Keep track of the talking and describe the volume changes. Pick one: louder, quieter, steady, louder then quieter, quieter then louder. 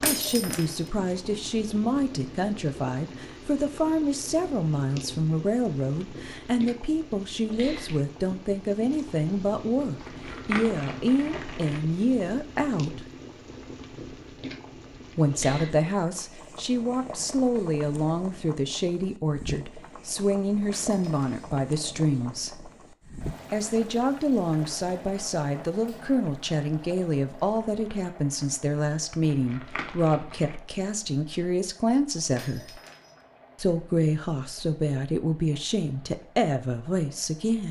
steady.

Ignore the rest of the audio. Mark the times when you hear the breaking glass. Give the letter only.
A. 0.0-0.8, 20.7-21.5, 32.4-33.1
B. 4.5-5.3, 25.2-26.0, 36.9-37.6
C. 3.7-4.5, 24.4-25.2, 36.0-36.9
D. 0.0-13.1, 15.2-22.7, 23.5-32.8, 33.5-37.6
A.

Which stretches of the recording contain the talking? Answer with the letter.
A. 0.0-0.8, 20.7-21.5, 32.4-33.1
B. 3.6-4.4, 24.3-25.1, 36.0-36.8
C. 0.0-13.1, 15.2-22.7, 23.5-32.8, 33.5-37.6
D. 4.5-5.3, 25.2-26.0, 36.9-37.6
C.